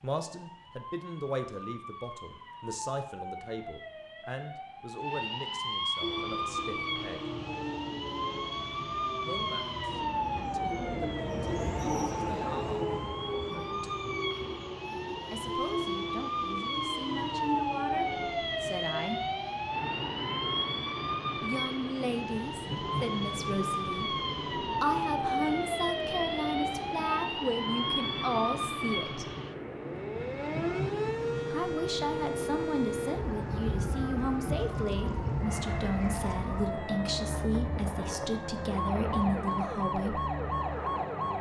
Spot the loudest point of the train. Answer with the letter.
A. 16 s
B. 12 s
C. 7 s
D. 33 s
B.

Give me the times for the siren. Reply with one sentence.
You can hear the siren from 0.0 to 41.3 s.